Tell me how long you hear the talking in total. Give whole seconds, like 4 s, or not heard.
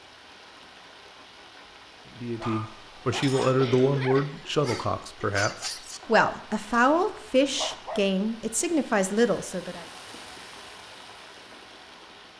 8 s.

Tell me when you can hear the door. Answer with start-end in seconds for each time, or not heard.
not heard.